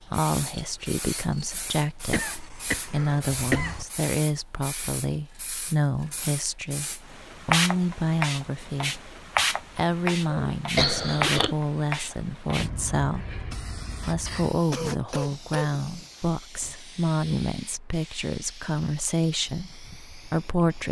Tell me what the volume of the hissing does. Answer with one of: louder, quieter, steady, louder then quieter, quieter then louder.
louder then quieter.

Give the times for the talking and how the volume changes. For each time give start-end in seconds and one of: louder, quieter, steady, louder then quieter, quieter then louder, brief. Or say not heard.
0.0-20.8 steady.